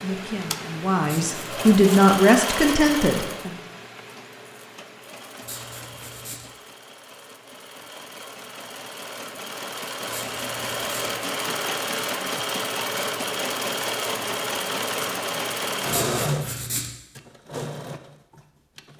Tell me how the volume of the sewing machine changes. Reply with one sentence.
The loudness of the sewing machine goes down, then up.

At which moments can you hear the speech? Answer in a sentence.
You can hear the speech from 0.0 to 3.6 s.